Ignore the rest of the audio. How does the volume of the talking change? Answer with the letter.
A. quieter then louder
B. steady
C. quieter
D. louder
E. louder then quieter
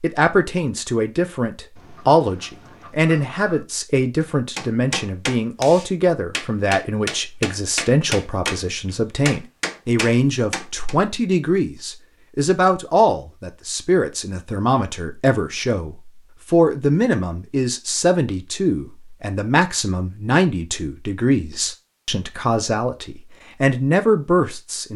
B.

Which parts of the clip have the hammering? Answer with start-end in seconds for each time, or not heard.
4.2-10.9.